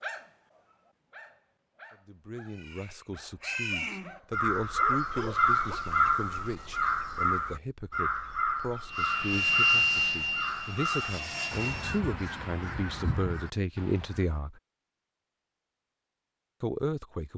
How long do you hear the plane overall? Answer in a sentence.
You can hear the plane for 3 seconds altogether.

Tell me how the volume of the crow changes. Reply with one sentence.
The volume of the crow goes down.